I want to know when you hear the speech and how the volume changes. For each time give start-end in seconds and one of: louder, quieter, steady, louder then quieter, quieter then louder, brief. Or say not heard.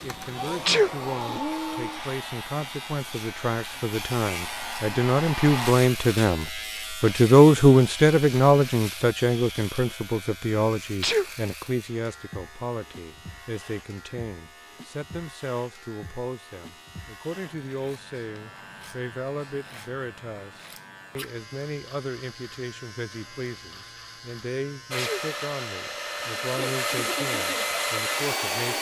0.0-28.7 louder then quieter.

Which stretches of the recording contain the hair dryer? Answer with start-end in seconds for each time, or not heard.
0.0-5.8, 24.9-28.7.